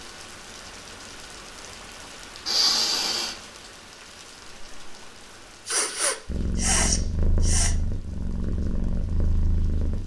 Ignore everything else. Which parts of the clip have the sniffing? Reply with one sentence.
The sniffing can be heard from 2.5 to 3.4 s and from 5.7 to 7.8 s.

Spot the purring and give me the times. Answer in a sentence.
You can hear the purring from 6.2 to 10.0 s.